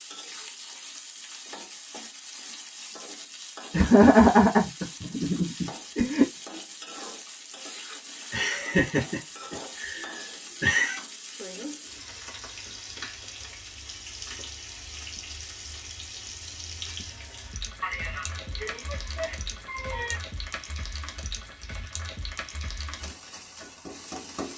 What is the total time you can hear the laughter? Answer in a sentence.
The laughter can be heard for 8 seconds in total.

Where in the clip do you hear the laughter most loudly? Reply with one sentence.
The loudest moment of the laughter is at 4 seconds.